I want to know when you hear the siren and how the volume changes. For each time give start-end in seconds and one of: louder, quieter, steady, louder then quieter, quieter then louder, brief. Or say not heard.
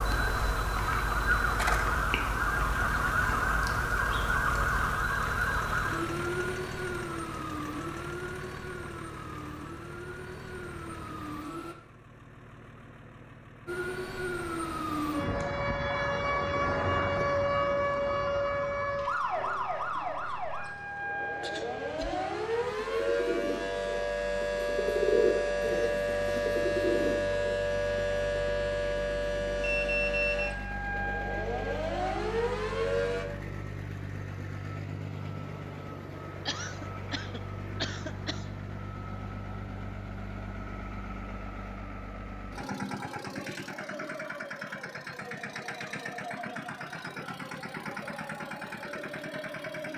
0.0-11.8 quieter
13.7-33.2 steady.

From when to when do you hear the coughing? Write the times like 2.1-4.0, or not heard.
21.4-22.3, 36.5-38.4.